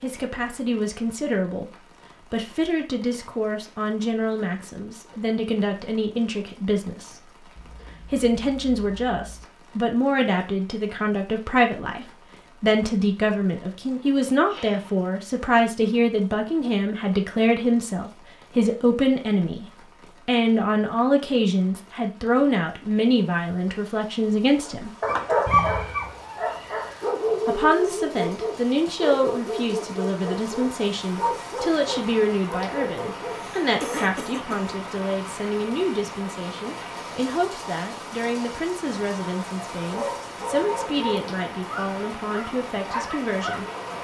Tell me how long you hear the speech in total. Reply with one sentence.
You can hear the speech for 40 seconds altogether.